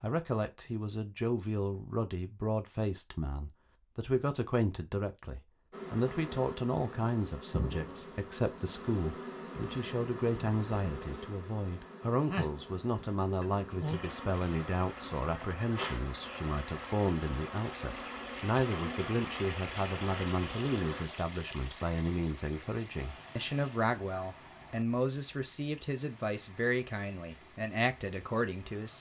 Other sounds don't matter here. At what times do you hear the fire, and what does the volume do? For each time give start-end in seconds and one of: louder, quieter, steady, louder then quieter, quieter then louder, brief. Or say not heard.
not heard.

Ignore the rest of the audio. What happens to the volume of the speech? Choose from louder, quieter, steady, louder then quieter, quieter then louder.
steady.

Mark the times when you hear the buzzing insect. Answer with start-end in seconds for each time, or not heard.
5.7-21.1.